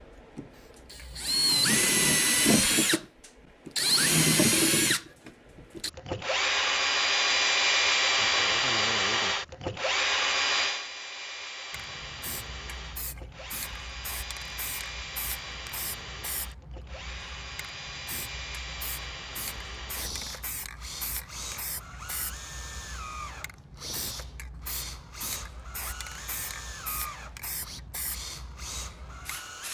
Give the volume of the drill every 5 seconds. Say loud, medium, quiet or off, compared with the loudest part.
loud, loud, medium, quiet, quiet, quiet.